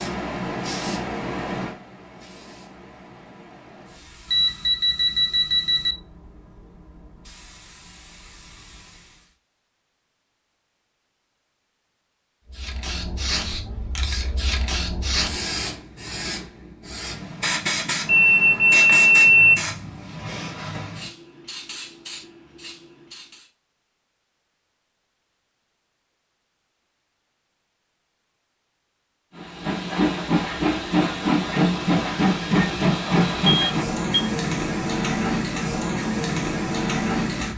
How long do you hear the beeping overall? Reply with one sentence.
The beeping can be heard for 4 seconds in total.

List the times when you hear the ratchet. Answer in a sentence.
The ratchet can't be heard in this clip.